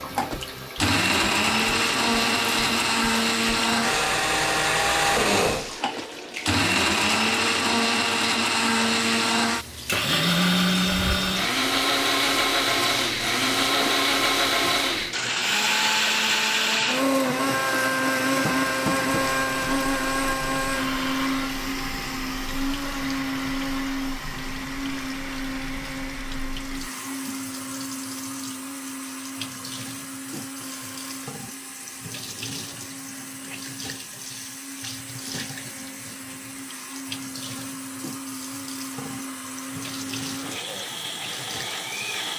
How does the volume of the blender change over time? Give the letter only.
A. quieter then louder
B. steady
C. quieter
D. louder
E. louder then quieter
C.